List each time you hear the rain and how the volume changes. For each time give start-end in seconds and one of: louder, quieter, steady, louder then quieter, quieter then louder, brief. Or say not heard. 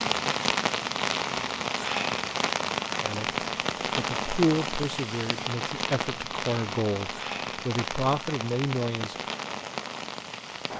0.0-10.7 quieter.